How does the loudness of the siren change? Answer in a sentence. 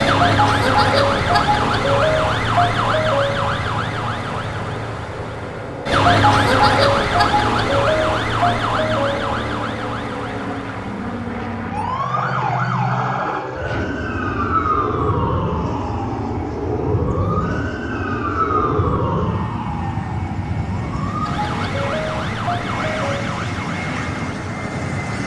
The loudness of the siren goes down.